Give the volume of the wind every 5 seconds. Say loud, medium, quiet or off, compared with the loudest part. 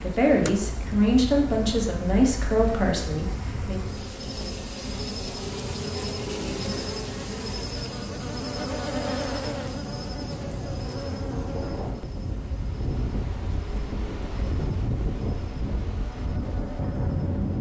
medium, medium, loud, loud.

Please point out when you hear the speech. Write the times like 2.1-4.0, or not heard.
0.0-3.8.